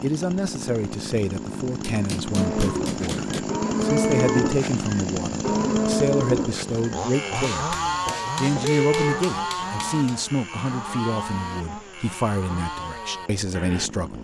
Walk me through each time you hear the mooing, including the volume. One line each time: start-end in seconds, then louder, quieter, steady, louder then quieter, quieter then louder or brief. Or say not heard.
2.3-13.9 quieter.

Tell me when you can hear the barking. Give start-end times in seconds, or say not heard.
not heard.